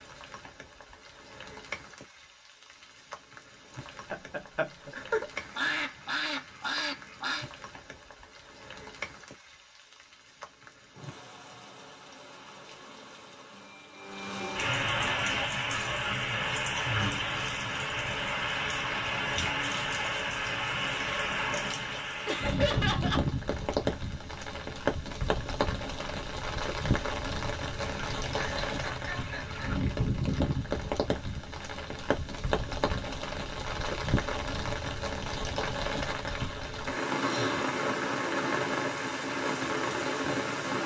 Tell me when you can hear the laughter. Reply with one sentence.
You can hear the laughter from 4.1 to 5.2 s, from 22.2 to 23.2 s and from 28.3 to 29.8 s.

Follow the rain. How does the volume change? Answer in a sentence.
The loudness of the rain goes up.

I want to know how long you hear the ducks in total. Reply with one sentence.
The ducks can be heard for 4 seconds in total.